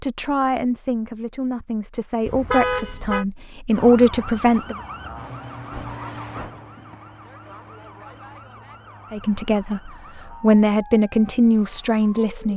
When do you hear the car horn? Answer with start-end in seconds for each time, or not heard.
2.2-3.2.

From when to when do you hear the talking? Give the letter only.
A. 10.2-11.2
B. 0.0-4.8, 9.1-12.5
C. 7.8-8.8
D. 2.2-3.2
B.